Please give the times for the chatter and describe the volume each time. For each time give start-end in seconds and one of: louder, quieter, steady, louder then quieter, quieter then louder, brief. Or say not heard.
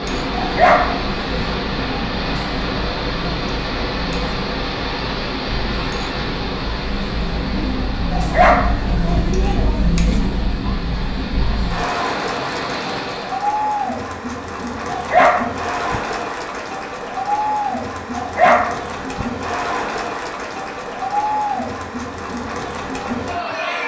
0.0-23.8 louder.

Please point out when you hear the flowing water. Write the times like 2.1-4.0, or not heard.
0.0-13.5.